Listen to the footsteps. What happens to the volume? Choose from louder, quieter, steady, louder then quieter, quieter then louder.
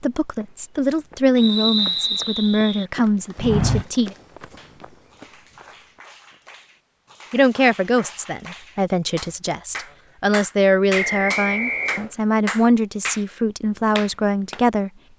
louder then quieter.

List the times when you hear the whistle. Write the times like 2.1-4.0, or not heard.
1.4-2.9, 10.9-12.1.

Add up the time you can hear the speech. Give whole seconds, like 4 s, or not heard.
12 s.